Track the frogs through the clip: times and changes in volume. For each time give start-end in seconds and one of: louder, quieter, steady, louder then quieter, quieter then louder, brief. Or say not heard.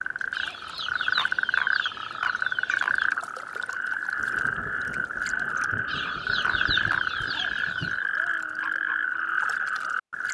0.0-10.2 steady.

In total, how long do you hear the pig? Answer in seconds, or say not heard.
not heard.